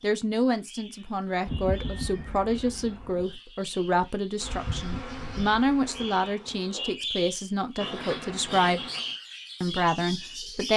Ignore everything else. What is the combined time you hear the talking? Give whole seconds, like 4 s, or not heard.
10 s.